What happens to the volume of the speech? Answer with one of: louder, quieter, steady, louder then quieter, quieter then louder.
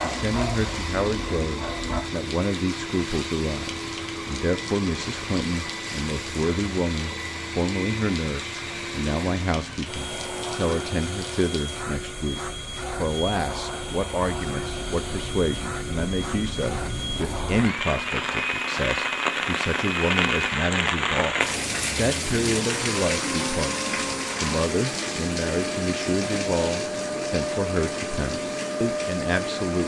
steady.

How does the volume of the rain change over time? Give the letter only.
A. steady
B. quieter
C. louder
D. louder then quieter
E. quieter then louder
D.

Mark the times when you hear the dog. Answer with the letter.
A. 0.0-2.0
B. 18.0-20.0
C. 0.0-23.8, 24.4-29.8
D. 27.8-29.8
A.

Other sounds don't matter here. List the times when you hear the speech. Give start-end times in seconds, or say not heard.
0.0-23.8, 24.4-29.8.